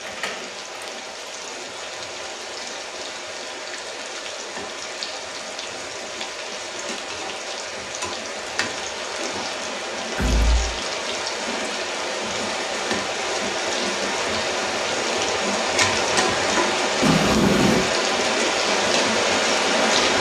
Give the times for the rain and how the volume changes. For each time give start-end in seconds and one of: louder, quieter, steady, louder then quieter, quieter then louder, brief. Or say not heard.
0.0-20.1 louder.